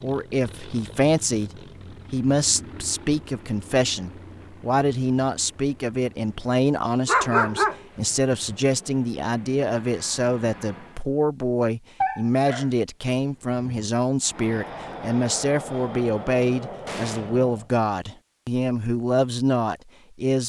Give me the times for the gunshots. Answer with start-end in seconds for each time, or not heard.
16.9-17.4.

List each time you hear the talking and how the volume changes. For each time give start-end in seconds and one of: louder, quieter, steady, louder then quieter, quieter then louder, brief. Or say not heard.
0.0-20.4 steady.